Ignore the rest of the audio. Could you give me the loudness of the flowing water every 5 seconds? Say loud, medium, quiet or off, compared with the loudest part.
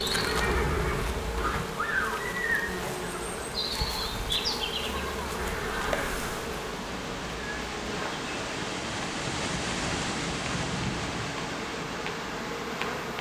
medium, loud, loud.